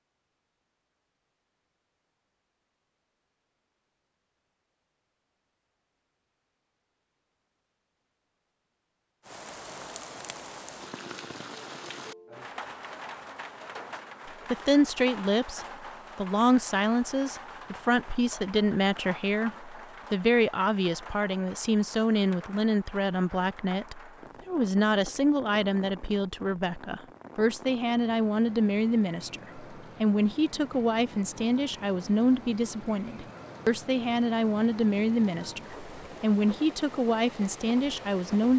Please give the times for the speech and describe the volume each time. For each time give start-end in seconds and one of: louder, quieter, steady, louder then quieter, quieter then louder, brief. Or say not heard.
14.5-38.5 steady.